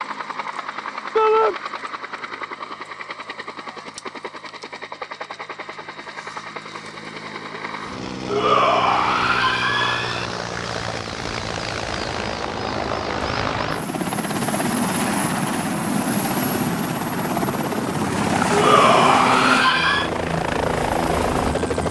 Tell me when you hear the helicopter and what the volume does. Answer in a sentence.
You can hear the helicopter from 0.0 to 21.8 s, getting louder.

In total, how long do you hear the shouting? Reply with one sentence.
You can hear the shouting for 4 seconds altogether.